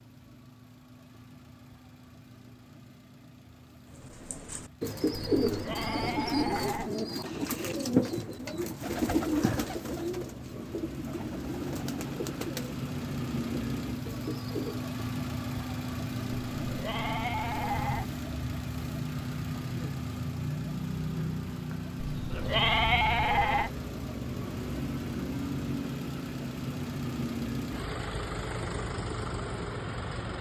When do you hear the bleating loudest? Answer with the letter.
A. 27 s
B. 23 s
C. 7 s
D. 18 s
B.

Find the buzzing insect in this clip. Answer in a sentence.
The buzzing insect can't be heard in this clip.